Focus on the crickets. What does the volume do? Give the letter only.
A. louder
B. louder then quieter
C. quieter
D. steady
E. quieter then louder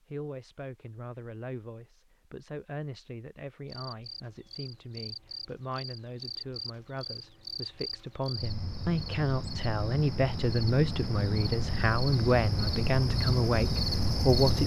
A.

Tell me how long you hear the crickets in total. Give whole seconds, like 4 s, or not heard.
11 s.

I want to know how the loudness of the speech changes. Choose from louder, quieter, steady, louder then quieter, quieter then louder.
louder.